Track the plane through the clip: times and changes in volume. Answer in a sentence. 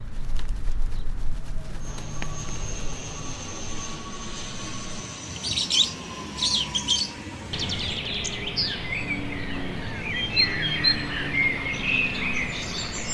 The plane can be heard from 1.8 to 13.0 s, at a steady volume.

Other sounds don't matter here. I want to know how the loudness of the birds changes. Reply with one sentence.
The volume of the birds goes up.